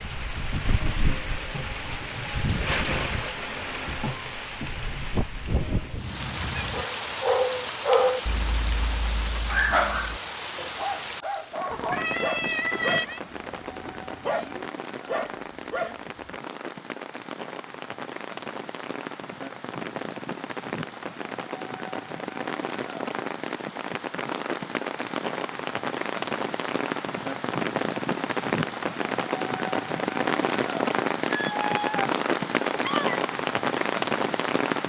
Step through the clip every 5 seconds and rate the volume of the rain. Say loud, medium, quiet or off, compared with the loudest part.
medium, medium, medium, medium, medium, loud, loud.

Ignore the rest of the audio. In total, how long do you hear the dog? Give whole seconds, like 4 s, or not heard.
10 s.